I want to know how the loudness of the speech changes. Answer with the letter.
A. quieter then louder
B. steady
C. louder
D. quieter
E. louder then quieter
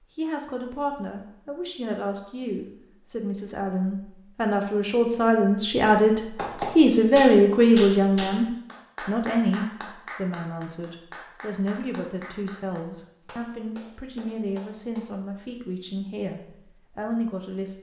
E.